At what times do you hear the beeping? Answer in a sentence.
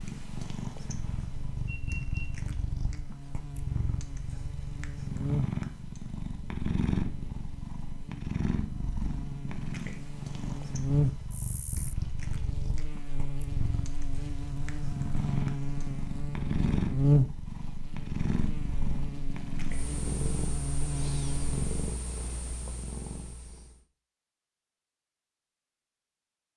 The beeping can be heard from 1.6 to 2.2 s.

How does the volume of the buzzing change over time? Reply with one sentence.
The volume of the buzzing goes up, then down.